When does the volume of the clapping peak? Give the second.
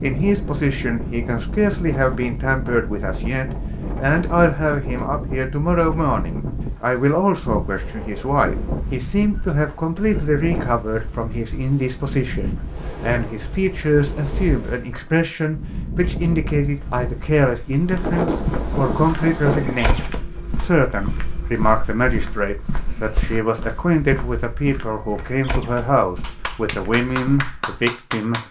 28 s.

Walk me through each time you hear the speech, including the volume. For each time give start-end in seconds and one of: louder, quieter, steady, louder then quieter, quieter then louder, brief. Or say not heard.
0.0-28.4 steady.